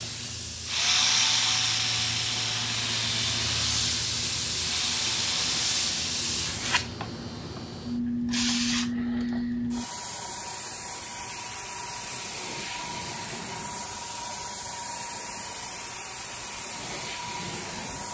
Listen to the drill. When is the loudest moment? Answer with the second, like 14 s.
1 s.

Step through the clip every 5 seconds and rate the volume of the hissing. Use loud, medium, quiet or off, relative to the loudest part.
loud, loud, medium, medium.